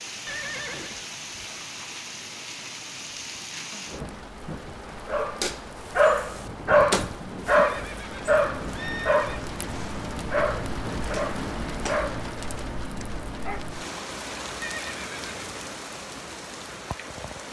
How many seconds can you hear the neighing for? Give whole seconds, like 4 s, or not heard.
4 s.